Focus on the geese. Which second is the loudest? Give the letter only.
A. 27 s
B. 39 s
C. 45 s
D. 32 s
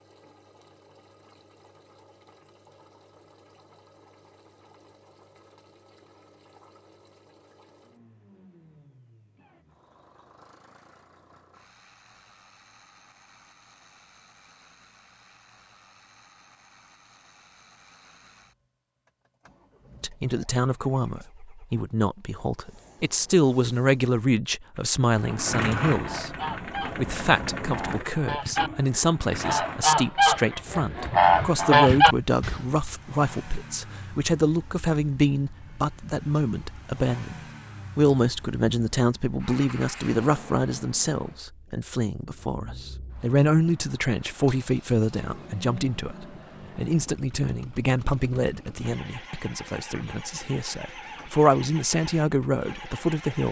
D.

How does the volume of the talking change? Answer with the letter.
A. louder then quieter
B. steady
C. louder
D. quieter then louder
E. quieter
B.